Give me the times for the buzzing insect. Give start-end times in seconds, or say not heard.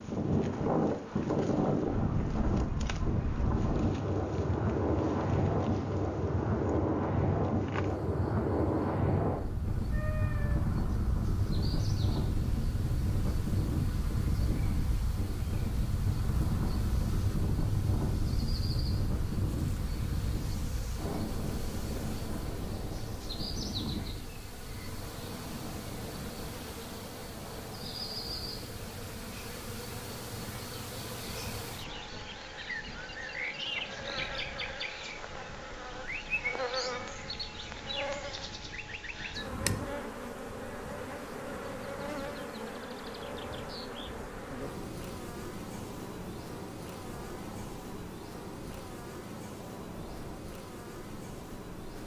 0.0-52.0.